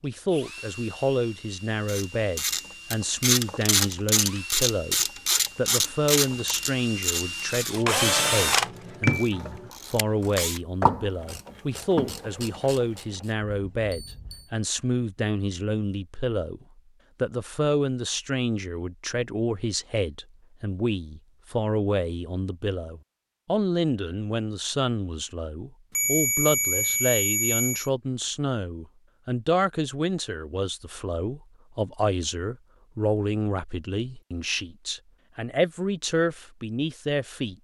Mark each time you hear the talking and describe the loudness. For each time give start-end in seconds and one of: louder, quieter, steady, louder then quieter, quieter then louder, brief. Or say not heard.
0.0-37.5 steady.